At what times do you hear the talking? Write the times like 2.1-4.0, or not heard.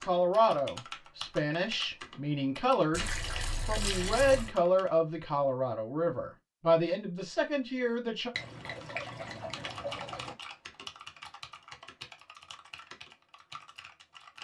0.0-8.3.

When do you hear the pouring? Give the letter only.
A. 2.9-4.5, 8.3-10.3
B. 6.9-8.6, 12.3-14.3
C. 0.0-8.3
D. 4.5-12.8
A.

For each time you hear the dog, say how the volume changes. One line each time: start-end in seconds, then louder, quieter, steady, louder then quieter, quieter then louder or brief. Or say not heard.
not heard.